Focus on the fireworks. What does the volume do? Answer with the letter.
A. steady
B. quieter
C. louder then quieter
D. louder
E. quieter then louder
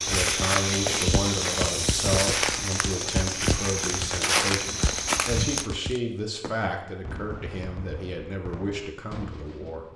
B.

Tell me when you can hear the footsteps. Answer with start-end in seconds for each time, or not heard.
0.0-5.7.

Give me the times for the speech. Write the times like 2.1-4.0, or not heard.
0.1-9.8.